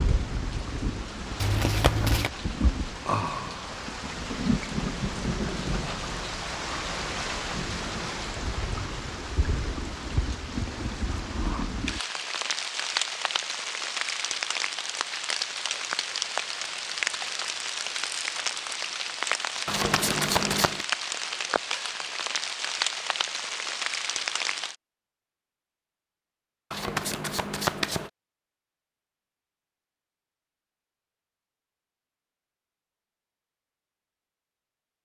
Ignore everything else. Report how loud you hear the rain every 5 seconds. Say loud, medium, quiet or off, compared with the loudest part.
loud, loud, loud, loud, loud, off, off.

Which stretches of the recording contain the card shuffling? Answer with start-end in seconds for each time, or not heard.
1.4-2.3, 19.6-20.9, 26.7-28.1.